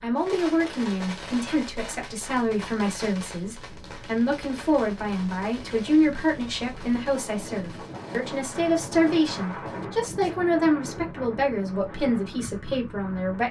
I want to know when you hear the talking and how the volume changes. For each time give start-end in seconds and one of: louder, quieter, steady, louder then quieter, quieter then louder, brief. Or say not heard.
0.0-13.4 steady.